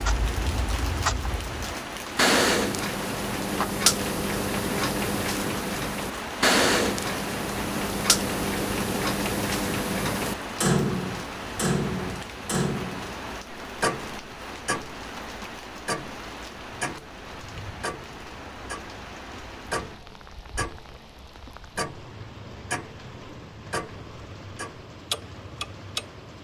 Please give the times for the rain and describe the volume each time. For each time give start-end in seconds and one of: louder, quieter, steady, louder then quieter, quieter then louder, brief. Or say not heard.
0.0-26.3 quieter.